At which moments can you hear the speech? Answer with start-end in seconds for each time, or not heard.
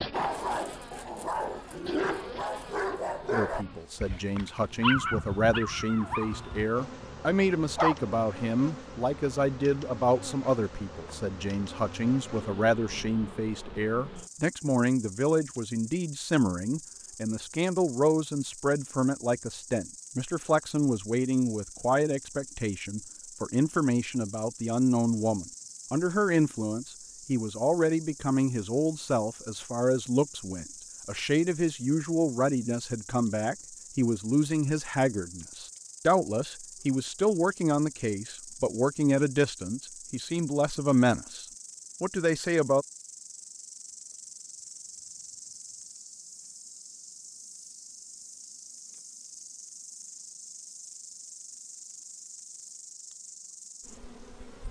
3.3-42.9.